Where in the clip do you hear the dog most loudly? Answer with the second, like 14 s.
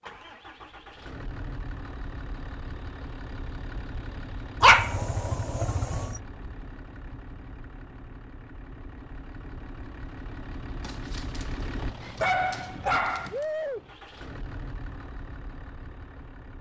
5 s.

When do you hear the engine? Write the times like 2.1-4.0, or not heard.
0.0-16.5.